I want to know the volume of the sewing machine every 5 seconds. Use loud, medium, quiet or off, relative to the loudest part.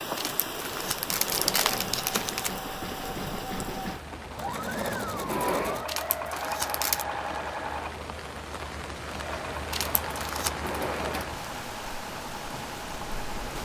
loud, loud, medium.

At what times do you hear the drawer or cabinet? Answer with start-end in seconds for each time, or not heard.
1.1-2.3, 5.1-5.8, 10.4-11.3.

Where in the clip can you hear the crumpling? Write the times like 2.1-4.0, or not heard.
0.1-2.5, 5.8-7.0, 9.7-10.5.